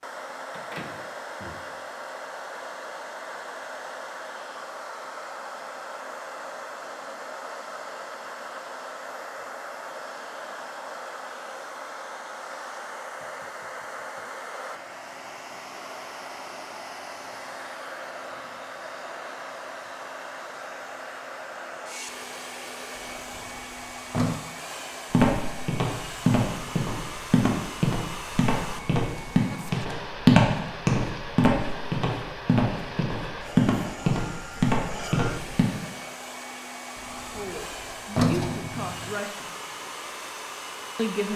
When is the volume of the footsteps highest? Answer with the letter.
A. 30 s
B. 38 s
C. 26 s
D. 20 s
A.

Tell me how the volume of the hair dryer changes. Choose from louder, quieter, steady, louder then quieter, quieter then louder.
steady.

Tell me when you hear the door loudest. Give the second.
38 s.